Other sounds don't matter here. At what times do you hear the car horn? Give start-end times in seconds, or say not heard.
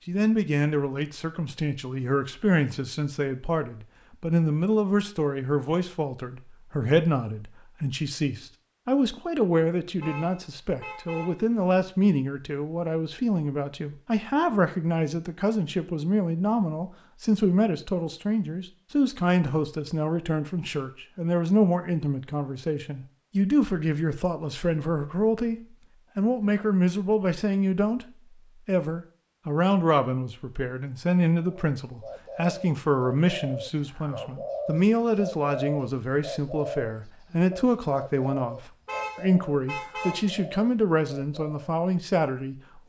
10.0-11.4, 38.9-40.4.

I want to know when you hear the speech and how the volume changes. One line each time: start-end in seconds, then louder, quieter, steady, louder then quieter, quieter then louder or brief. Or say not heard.
0.1-42.8 steady.